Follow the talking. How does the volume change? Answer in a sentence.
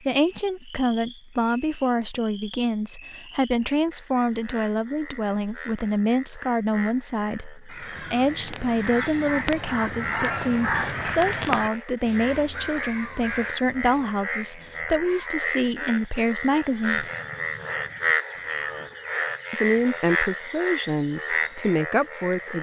The loudness of the talking stays about the same.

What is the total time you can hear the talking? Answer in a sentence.
You can hear the talking for 20 seconds altogether.